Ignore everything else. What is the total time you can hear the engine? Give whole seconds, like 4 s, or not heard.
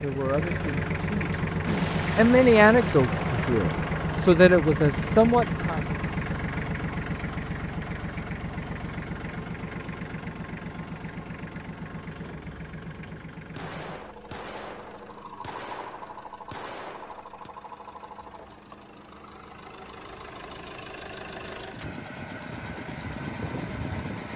24 s.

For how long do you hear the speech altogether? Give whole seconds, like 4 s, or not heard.
6 s.